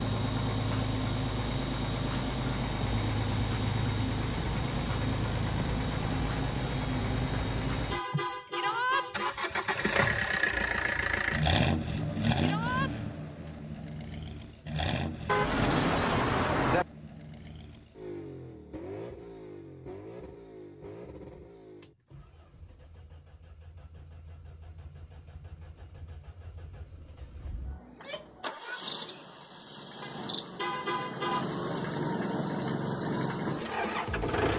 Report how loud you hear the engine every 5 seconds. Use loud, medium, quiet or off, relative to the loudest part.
loud, loud, loud, medium, quiet, quiet, loud.